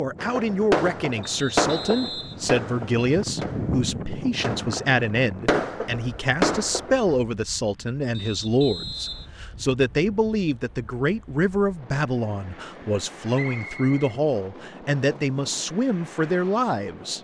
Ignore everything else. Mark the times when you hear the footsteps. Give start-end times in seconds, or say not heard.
not heard.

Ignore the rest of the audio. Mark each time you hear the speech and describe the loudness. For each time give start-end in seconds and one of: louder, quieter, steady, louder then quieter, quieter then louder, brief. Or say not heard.
0.0-17.1 steady.